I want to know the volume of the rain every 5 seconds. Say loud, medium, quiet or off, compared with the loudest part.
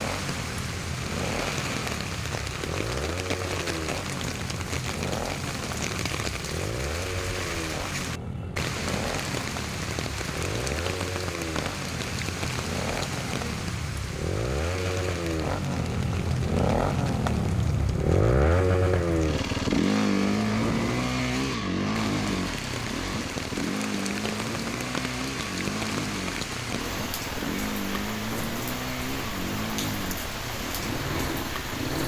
loud, loud, loud, medium, loud, loud, loud.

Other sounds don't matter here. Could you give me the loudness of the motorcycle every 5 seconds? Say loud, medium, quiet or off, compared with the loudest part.
medium, medium, medium, loud, loud, medium, medium.